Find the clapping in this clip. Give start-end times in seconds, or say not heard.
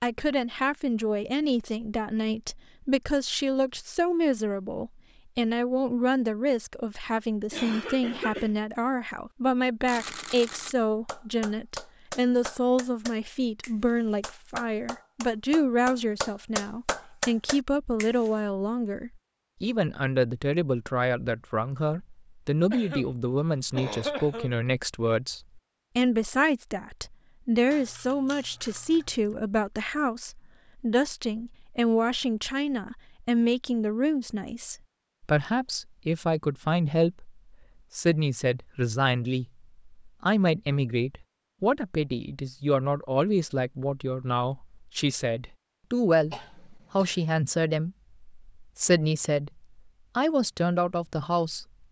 11.1-18.3.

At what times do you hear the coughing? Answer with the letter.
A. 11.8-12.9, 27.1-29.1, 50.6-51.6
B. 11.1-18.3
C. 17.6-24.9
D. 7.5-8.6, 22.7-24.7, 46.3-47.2
D.